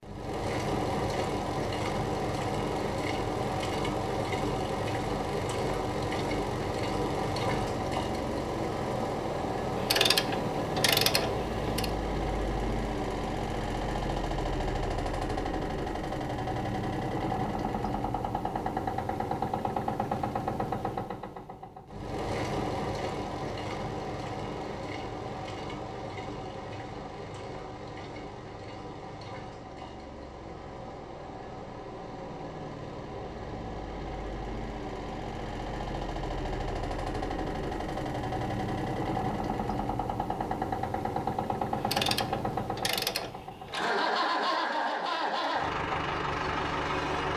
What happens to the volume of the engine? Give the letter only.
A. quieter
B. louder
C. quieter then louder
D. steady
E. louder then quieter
C.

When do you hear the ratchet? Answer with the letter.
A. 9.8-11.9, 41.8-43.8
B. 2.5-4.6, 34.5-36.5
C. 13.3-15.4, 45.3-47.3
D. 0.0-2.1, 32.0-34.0
A.